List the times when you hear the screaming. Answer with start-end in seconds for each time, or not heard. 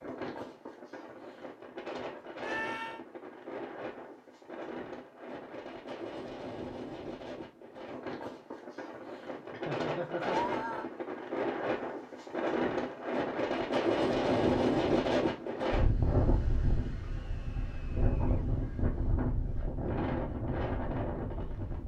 2.4-3.0, 10.2-10.8, 17.0-18.5.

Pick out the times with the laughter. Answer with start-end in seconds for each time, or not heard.
9.3-10.4.